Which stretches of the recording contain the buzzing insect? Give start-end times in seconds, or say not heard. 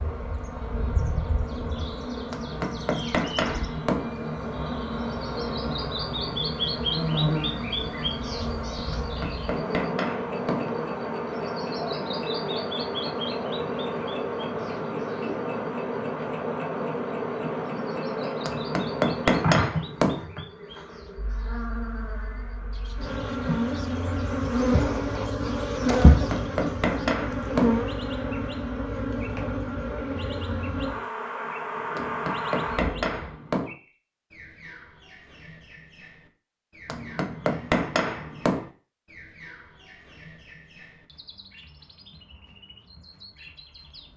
0.0-33.4.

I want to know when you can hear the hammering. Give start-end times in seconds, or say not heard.
2.3-4.1, 8.9-10.7, 18.4-20.2, 26.1-27.8, 31.9-33.8, 36.9-38.6.